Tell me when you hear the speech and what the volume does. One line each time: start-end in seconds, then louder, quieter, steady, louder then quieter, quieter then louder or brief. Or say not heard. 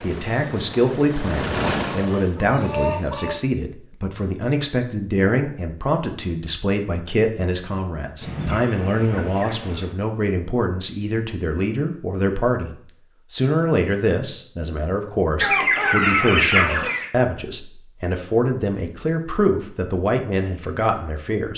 0.0-21.5 steady.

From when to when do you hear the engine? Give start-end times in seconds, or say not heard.
0.0-2.4.